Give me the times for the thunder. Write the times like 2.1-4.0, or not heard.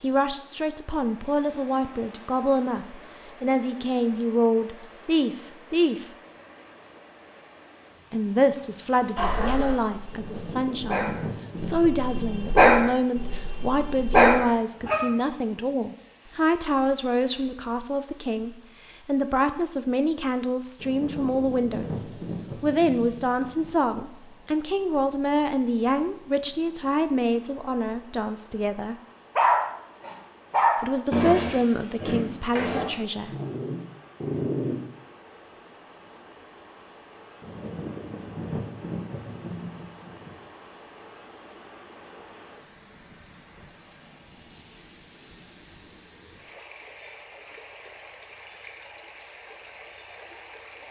10.1-12.6, 20.8-23.8, 37.4-40.4.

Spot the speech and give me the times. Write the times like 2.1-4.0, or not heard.
0.0-6.0, 8.1-28.9, 30.8-33.3.